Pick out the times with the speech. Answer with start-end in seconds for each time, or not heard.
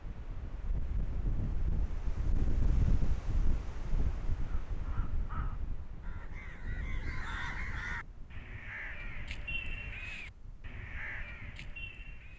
not heard.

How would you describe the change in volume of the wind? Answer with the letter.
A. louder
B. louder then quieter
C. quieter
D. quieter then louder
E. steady
C.